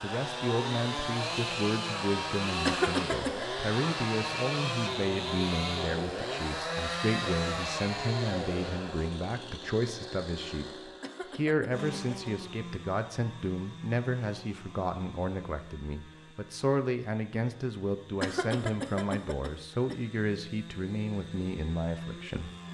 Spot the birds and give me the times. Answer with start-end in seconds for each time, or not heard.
not heard.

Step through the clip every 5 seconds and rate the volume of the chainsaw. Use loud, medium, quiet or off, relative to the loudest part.
loud, loud, medium, quiet, medium.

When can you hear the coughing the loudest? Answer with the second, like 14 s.
3 s.